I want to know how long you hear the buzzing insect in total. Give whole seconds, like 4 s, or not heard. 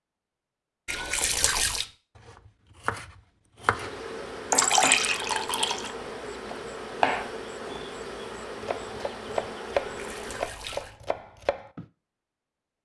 7 s.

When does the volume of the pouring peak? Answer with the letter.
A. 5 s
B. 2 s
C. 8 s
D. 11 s
A.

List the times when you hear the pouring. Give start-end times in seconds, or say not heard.
0.8-1.9, 4.5-6.0, 9.8-10.9.